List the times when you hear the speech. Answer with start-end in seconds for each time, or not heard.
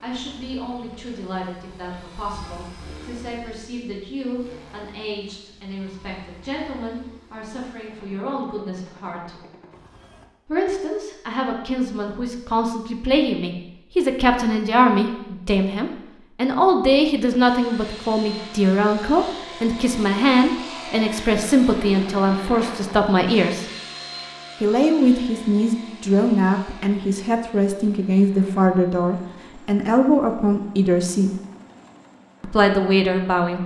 0.0-9.4, 10.4-23.6, 24.6-31.3, 32.4-33.6.